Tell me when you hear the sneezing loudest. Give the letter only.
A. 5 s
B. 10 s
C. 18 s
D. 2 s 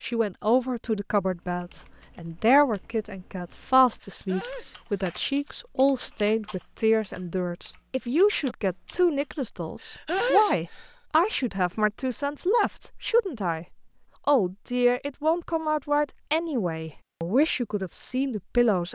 B.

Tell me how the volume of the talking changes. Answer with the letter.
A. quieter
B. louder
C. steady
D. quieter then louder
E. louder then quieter
C.